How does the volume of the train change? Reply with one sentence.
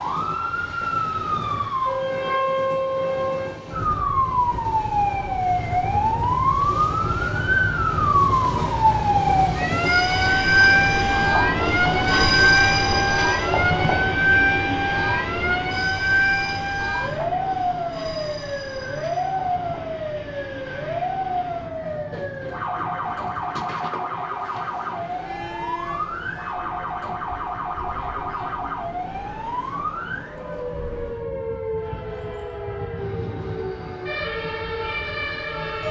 The loudness of the train goes up, then down.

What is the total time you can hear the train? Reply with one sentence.
You can hear the train for 36 seconds altogether.